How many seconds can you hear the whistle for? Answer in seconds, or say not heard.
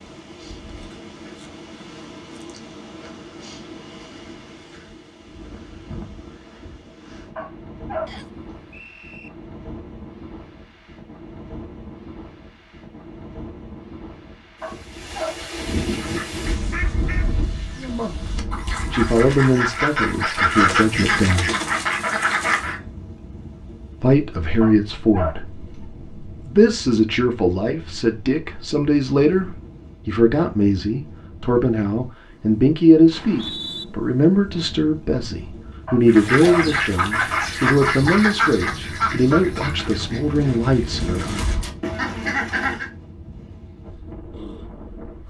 2 s.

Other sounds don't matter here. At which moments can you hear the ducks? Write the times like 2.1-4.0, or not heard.
15.9-22.8, 36.0-42.9.